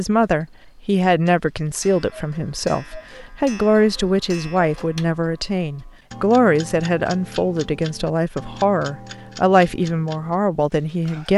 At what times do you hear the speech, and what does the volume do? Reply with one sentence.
The speech can be heard from 0.0 to 11.3 s, at a steady volume.